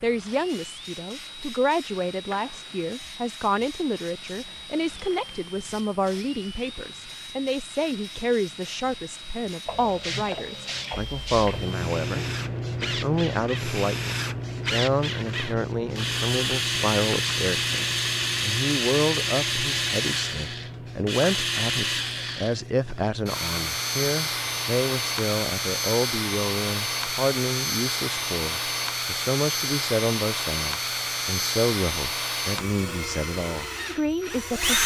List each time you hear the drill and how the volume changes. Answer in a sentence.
You can hear the drill from 0.0 to 34.8 s, getting louder.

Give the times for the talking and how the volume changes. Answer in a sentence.
You can hear the talking from 0.0 to 34.8 s, at a steady volume.